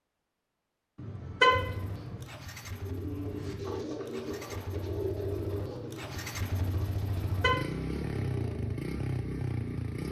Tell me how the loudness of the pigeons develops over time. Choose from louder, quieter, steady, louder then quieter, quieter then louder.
quieter.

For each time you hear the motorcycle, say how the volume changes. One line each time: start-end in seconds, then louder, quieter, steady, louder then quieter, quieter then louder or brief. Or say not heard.
1.5-10.0 louder.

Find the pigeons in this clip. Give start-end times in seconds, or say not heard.
2.8-8.8.